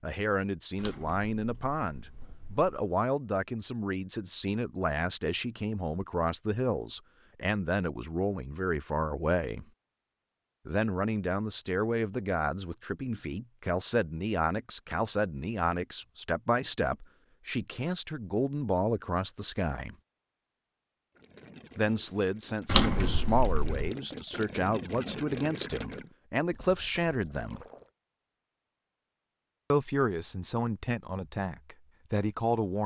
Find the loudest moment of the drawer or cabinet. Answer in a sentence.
The volume of the drawer or cabinet peaks at 23 seconds.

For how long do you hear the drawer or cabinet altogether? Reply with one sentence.
The drawer or cabinet can be heard for 3 seconds in total.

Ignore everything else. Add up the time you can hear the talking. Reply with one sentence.
The talking can be heard for 28 seconds in total.